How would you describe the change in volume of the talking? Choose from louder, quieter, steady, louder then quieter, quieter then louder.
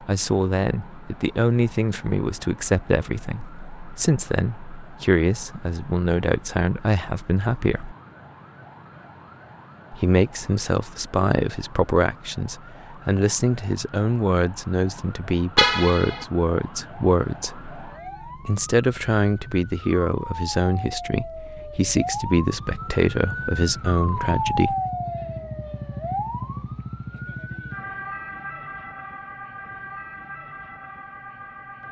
steady.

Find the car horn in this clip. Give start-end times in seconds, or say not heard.
15.6-16.2.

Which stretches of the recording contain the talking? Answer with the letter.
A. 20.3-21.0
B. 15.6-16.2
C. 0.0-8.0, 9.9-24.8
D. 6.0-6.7
C.